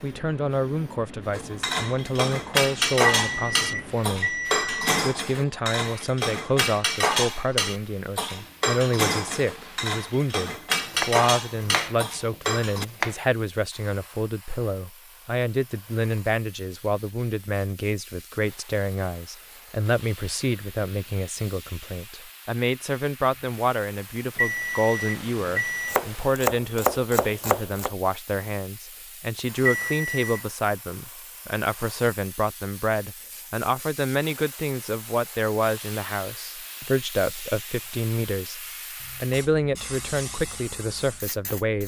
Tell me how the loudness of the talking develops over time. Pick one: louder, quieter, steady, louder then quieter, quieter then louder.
steady.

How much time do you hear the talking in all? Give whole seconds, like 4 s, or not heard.
42 s.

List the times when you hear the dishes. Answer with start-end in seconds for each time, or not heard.
1.3-12.8.